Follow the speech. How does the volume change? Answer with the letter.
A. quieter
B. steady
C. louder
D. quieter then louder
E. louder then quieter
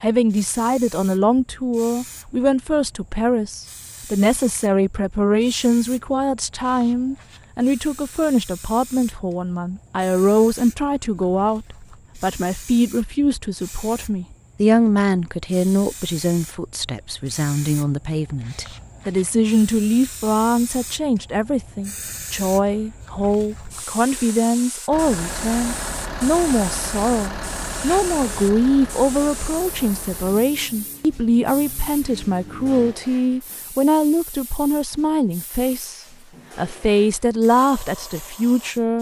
B.